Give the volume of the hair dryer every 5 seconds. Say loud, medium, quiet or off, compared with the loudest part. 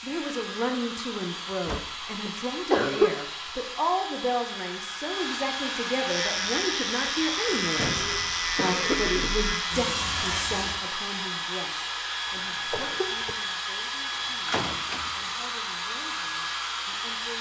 medium, loud, loud, loud.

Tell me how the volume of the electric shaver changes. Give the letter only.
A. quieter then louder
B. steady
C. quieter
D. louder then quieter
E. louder
B.